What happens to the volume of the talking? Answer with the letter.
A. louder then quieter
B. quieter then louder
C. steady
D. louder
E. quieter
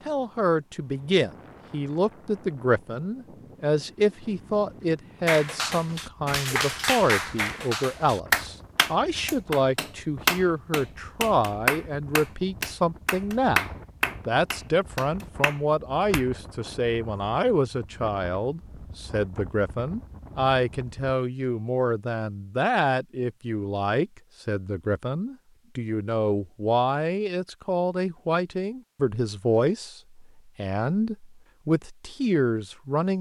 C.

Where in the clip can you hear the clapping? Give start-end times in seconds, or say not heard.
5.2-16.2.